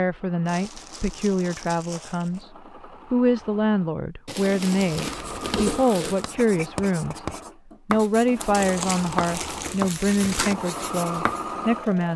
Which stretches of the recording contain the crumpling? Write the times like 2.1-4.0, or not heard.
0.5-2.5, 4.2-6.2, 8.5-10.6.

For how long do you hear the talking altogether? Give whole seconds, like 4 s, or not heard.
11 s.